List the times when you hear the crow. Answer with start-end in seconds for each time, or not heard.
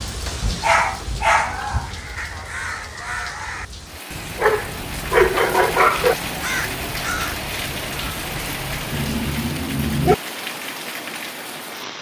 1.8-9.3.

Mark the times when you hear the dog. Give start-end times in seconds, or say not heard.
0.4-1.9, 4.3-6.2, 8.9-10.2.